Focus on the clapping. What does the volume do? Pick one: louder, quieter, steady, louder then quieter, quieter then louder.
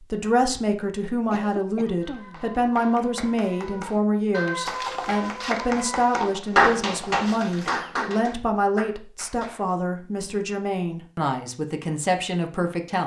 louder then quieter.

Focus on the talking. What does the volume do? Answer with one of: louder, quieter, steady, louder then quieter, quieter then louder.
steady.